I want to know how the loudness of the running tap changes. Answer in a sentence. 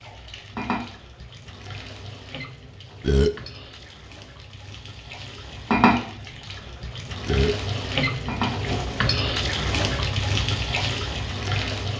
The volume of the running tap goes up.